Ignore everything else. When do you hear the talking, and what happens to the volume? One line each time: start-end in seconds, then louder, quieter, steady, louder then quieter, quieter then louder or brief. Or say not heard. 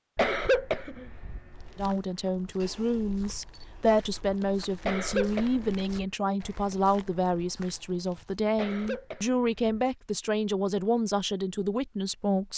1.8-12.5 steady.